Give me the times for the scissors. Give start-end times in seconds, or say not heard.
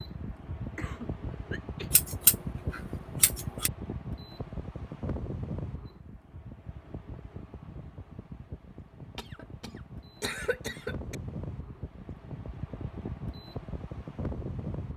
1.9-3.7.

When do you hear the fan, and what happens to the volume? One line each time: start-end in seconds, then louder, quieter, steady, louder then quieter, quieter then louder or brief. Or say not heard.
0.0-14.9 quieter then louder.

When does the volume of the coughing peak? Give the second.
10 s.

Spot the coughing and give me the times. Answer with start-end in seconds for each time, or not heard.
0.8-1.9, 9.2-11.2.